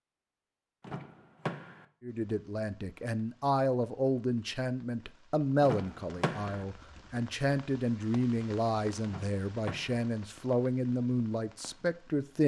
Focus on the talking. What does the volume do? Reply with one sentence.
The loudness of the talking stays about the same.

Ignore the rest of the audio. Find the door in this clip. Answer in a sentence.
You can hear the door from 0.8 to 1.9 s, from 5.6 to 6.7 s and from 9.1 to 10.1 s.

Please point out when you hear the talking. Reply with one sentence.
You can hear the talking from 2.0 to 12.4 s.